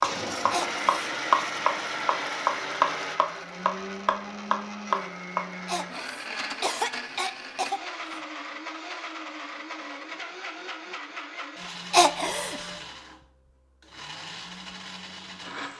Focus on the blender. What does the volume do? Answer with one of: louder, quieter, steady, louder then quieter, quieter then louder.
quieter.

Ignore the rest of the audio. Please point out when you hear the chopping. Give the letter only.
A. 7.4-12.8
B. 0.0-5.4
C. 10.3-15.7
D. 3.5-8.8
B.